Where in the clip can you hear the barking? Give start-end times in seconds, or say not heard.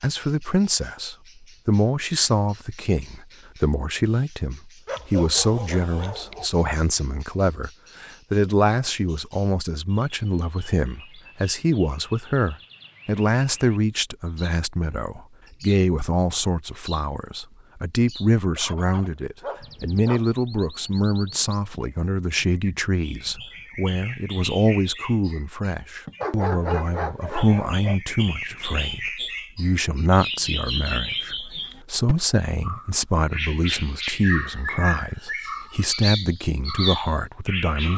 4.8-6.5, 19.4-20.2, 26.2-28.0.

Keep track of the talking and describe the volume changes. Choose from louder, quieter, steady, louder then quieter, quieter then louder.
steady.